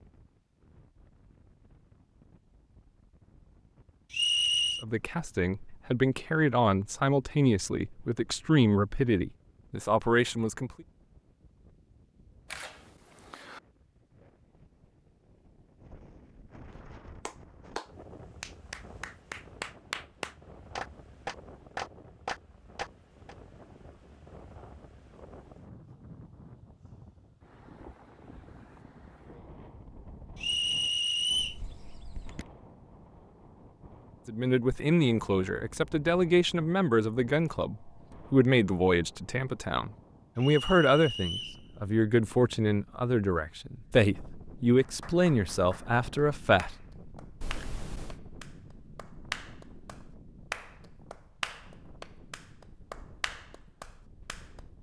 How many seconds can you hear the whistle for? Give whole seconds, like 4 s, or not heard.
3 s.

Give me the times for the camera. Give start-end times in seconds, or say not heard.
12.5-13.6, 31.4-32.5, 47.4-48.2.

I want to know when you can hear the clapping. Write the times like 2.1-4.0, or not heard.
16.7-23.4, 44.8-54.6.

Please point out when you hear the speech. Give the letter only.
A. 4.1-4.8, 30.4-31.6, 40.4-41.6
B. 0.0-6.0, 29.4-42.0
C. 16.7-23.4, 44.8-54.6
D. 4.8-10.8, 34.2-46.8
D.